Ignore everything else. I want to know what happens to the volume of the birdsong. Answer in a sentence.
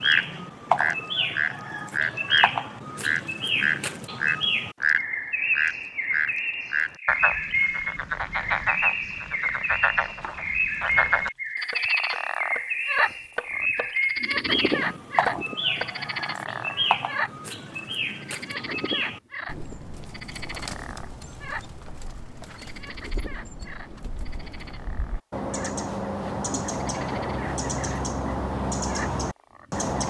The loudness of the birdsong goes down, then up.